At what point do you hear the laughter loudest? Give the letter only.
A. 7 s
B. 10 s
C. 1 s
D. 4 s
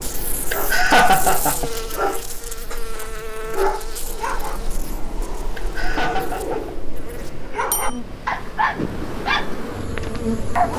C.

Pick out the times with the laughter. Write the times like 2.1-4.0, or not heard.
0.5-1.7, 5.5-6.8.